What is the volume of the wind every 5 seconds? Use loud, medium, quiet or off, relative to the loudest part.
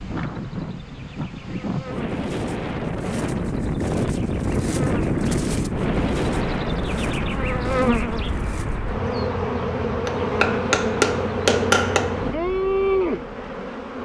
loud, loud, off.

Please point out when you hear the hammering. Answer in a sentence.
The hammering can be heard from 10.1 to 12.3 s.